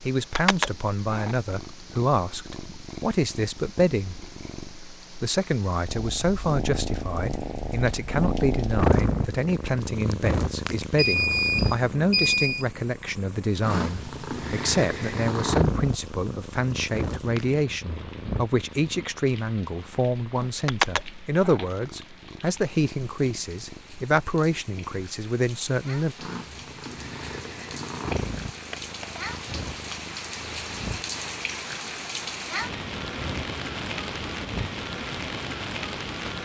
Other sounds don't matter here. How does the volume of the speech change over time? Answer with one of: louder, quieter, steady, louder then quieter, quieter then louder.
steady.